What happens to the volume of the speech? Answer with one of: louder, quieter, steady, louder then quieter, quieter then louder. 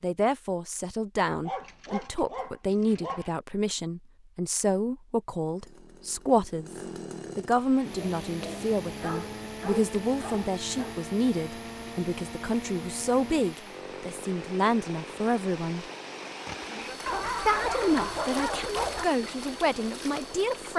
steady.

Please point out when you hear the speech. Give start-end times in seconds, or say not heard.
0.0-15.8, 17.4-20.7.